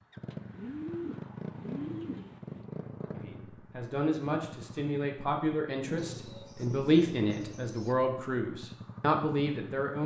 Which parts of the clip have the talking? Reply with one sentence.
You can hear the talking from 3.1 to 10.0 s.